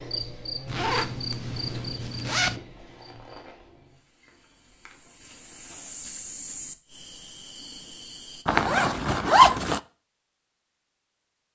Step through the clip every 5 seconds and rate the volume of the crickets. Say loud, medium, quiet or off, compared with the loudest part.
loud, loud, off.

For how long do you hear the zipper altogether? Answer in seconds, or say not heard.
3 s.